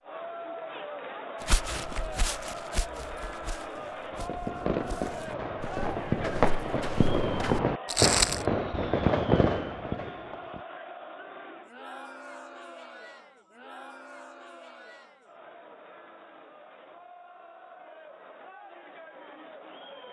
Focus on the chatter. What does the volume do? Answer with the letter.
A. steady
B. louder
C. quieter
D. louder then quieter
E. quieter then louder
C.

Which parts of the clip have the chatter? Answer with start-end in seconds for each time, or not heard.
0.0-20.0.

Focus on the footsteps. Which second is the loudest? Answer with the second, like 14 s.
8 s.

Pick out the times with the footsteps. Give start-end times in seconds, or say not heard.
1.4-8.4.